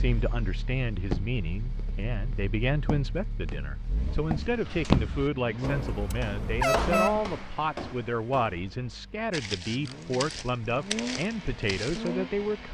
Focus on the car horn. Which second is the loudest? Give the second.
7 s.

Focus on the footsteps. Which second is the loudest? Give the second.
5 s.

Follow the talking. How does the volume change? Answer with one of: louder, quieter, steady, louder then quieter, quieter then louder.
steady.